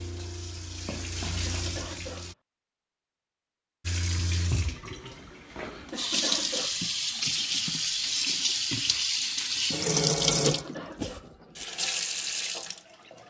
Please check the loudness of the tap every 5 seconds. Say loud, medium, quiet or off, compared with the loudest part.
medium, loud, loud.